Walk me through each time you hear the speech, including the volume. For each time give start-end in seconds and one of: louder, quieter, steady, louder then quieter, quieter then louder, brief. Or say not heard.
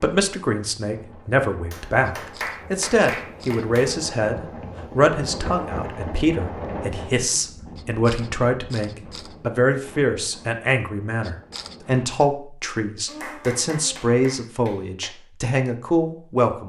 0.0-16.6 steady.